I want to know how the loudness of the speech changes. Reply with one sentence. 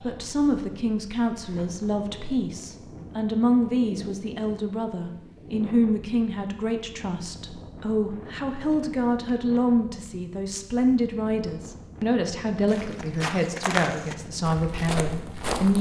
The volume of the speech stays about the same.